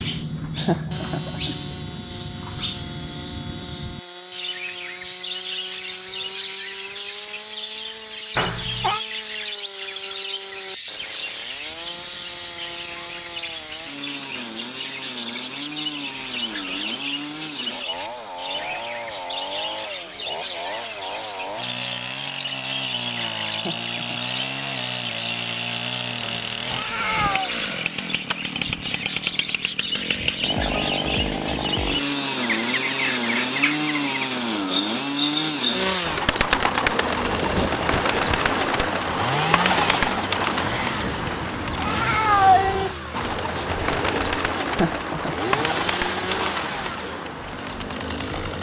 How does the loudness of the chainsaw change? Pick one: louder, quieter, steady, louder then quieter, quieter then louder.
louder.